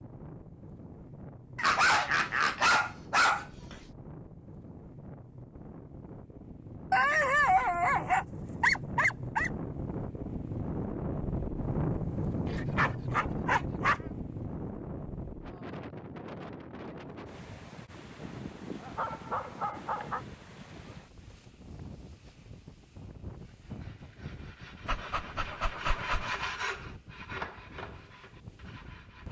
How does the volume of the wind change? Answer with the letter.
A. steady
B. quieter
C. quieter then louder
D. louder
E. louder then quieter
E.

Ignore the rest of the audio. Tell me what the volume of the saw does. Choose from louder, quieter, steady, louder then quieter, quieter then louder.
louder then quieter.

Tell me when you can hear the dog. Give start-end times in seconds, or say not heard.
1.6-3.8, 6.9-9.5, 12.4-14.0, 18.2-20.2, 24.9-26.4.